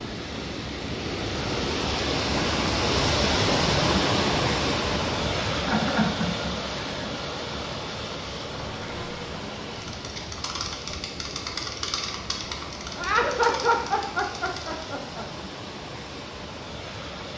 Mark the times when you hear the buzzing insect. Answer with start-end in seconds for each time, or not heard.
8.5-14.8.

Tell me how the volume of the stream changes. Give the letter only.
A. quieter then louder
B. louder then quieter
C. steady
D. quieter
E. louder
D.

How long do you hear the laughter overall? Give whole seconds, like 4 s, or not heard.
4 s.